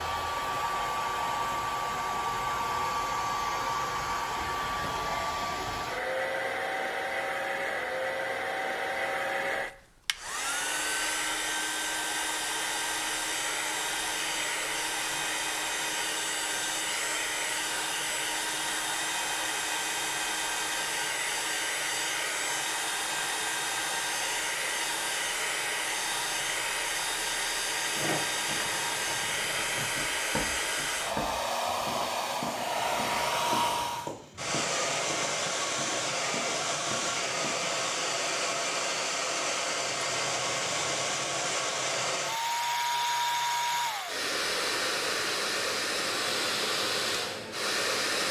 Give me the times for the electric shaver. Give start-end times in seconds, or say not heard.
not heard.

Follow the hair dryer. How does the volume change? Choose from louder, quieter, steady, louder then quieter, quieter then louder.
steady.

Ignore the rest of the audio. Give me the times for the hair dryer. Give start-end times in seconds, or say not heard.
0.0-48.2.